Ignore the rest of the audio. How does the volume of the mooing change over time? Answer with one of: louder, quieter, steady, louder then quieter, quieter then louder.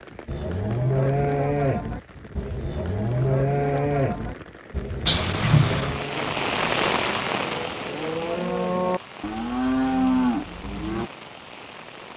quieter then louder.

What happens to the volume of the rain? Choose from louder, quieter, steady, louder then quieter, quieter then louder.
louder then quieter.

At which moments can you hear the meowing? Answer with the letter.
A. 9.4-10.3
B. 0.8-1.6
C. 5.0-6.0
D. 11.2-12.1
C.